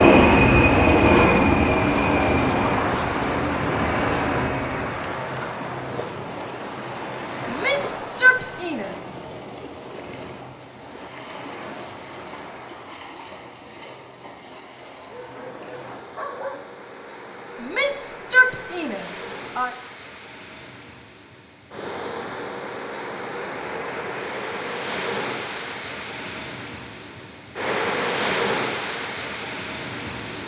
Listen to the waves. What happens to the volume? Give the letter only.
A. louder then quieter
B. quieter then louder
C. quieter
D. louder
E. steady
B.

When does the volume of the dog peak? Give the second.
16 s.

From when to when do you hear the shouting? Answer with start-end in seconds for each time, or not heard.
7.5-8.9, 17.6-19.7.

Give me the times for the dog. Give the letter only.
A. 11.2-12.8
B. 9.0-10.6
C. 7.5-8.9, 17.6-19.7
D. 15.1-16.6
D.